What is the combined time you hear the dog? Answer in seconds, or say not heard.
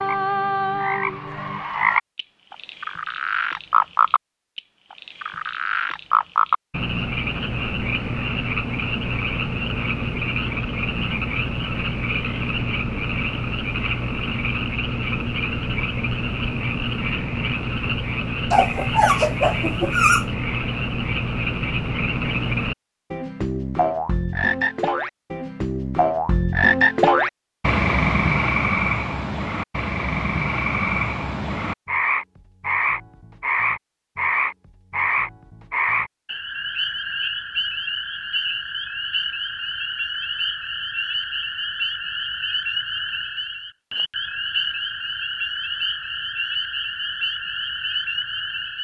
2 s.